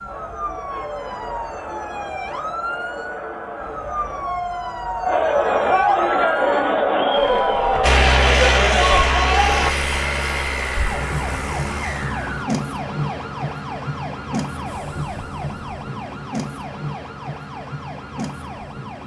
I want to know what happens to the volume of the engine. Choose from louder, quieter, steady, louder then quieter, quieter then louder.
quieter.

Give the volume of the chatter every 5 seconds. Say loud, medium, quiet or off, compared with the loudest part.
quiet, loud, off, off.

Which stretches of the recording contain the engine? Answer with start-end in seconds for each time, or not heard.
7.8-12.4.